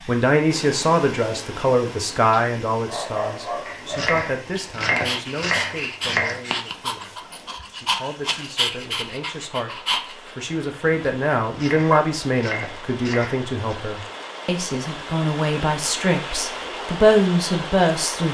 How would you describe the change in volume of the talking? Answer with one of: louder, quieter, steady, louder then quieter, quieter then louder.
quieter then louder.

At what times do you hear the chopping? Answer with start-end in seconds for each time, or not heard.
3.6-6.5, 11.4-13.8.